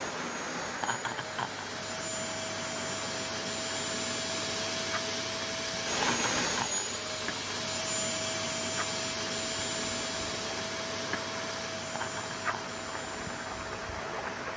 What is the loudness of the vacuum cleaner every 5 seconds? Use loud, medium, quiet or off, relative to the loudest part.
loud, loud, medium.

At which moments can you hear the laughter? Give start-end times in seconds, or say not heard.
0.8-1.6, 5.9-6.8, 11.8-12.8.